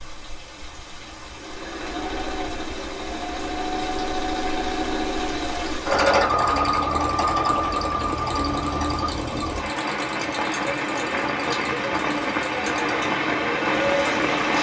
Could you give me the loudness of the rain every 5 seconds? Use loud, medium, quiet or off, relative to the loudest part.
quiet, medium, loud.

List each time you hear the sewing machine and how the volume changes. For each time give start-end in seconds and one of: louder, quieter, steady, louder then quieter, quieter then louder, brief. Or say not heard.
0.0-14.4 louder then quieter.